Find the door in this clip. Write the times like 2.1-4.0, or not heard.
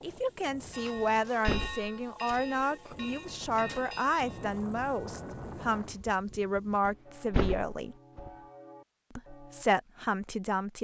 0.9-3.0, 6.8-8.3.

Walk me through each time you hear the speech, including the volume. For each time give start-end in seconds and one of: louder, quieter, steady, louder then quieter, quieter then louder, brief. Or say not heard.
0.0-8.0 steady
9.2-10.7 brief.